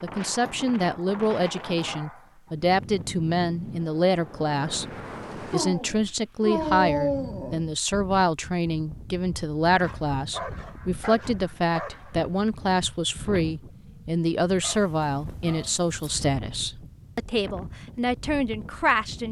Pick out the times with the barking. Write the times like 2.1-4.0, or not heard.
0.2-2.5, 5.5-7.7, 9.8-12.3, 14.6-16.2.